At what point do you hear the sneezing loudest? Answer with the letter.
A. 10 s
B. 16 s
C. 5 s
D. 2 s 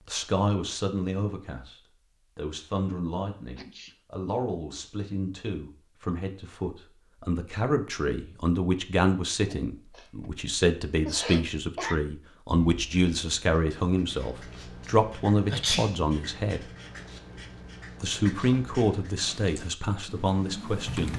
B.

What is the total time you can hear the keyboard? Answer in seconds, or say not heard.
2 s.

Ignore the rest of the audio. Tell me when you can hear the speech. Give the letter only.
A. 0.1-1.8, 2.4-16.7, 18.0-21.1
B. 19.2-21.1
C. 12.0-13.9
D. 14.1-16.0
A.